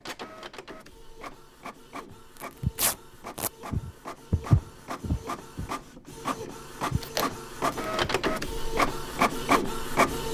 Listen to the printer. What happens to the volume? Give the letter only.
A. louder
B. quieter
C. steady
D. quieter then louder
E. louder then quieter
A.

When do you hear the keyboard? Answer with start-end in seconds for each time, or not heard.
not heard.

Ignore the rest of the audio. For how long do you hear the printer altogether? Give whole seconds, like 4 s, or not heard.
10 s.